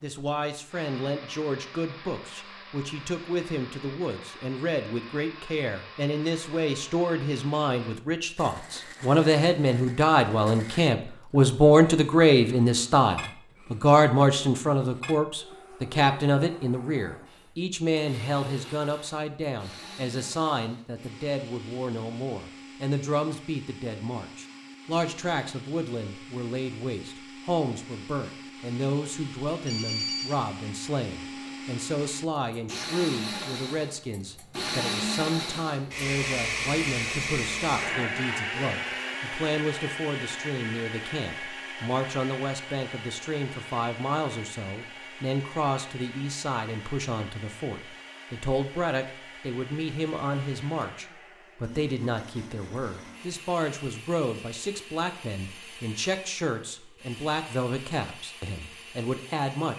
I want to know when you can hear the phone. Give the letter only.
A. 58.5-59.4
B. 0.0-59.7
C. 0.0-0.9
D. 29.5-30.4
D.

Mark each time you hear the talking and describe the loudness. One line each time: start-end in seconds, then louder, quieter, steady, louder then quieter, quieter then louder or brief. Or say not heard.
0.0-59.7 quieter.